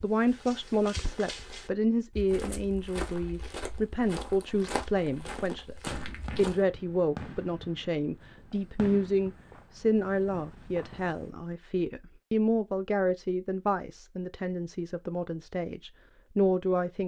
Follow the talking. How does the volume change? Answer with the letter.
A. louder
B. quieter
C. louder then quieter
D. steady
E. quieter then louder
D.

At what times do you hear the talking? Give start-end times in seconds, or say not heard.
0.0-17.0.